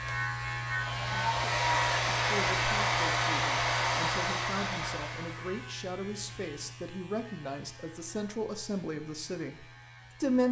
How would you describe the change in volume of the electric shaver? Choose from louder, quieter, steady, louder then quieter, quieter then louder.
quieter.